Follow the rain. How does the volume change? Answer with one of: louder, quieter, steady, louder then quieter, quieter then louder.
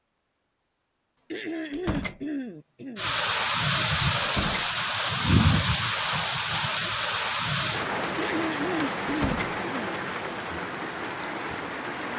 quieter.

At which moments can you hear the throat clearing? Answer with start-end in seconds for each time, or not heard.
1.3-3.2, 8.2-10.1.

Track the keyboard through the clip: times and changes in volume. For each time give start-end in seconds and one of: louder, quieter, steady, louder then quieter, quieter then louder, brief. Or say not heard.
not heard.